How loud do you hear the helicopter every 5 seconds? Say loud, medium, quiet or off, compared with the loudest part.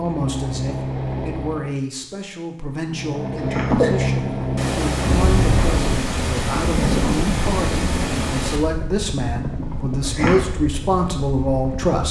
loud, loud, medium.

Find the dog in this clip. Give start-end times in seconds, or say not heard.
not heard.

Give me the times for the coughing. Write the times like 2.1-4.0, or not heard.
2.9-4.1, 9.6-10.4.